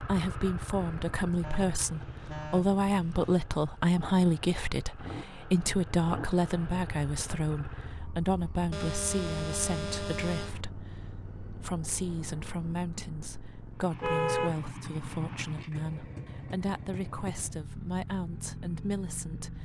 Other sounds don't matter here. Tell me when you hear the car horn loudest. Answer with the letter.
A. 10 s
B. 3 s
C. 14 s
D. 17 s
C.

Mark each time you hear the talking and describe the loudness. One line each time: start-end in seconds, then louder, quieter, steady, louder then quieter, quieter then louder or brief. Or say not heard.
0.0-19.5 quieter.